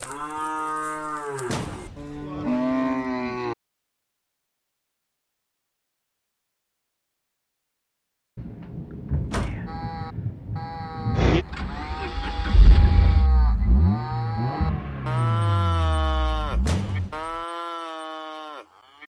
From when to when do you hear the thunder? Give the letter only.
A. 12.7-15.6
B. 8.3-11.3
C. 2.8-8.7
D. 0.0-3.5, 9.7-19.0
B.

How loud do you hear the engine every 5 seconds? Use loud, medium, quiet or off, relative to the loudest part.
off, off, loud, loud.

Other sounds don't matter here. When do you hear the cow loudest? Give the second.
3 s.